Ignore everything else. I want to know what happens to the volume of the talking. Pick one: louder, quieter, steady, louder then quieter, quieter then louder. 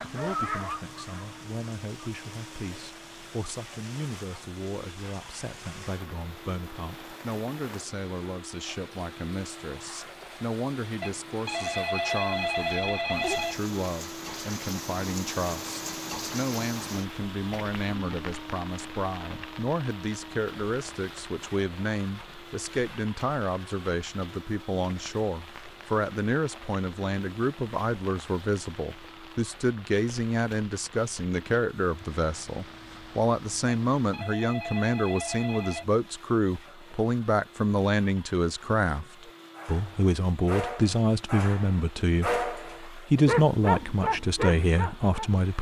louder.